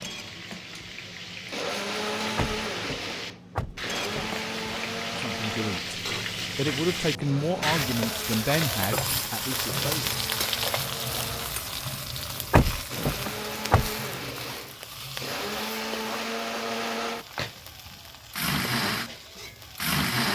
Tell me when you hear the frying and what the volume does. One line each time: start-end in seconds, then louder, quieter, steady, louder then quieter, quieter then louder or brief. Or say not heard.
0.0-20.0 louder then quieter.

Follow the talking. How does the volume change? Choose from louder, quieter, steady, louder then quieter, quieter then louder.
louder then quieter.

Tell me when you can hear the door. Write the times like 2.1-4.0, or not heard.
2.4-4.4, 12.5-13.9.